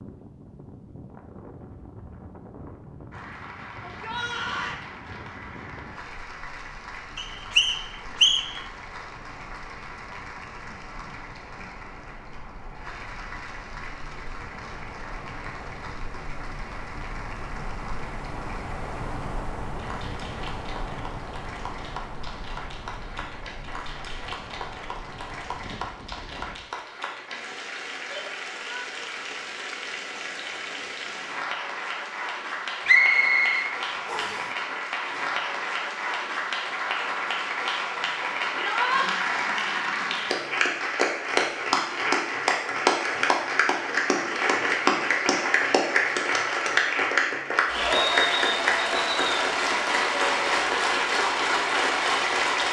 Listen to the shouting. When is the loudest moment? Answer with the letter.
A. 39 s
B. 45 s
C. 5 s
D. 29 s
A.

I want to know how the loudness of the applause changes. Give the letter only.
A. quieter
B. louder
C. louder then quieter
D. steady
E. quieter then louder
B.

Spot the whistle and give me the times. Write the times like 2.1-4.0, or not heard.
7.2-8.6, 32.9-34.5.